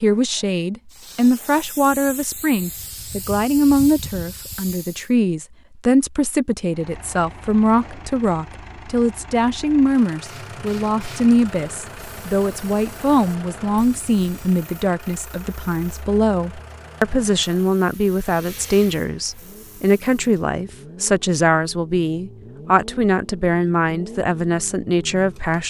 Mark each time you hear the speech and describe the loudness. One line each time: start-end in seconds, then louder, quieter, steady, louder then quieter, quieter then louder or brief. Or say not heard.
0.0-25.6 steady.